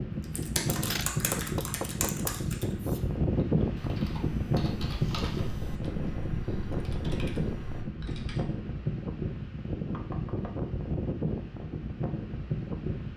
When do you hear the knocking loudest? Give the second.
1 s.